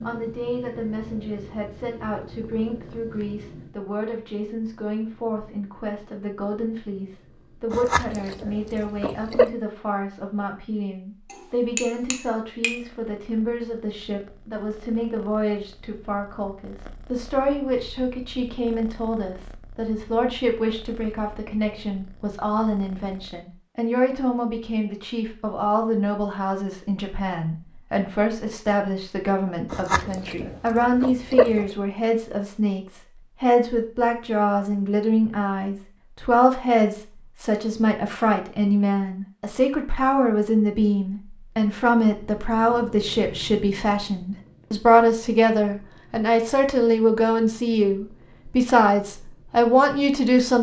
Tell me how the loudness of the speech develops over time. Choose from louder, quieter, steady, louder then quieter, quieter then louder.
louder.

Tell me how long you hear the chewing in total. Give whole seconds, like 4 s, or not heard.
4 s.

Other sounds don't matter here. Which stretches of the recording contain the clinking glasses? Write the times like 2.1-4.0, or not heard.
11.2-12.8.